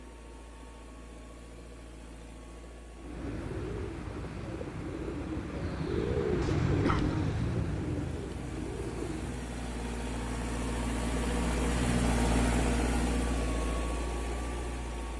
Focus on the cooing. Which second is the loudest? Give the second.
7 s.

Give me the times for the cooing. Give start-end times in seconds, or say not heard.
3.0-9.4.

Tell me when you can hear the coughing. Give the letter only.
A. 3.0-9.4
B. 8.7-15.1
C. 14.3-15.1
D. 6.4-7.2
D.